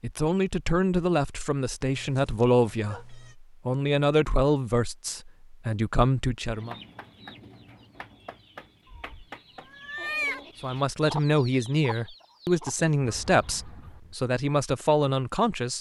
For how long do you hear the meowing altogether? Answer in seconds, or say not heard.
3 s.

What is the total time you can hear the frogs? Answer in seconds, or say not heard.
not heard.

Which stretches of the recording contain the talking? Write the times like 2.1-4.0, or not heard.
0.0-6.8, 10.6-15.7.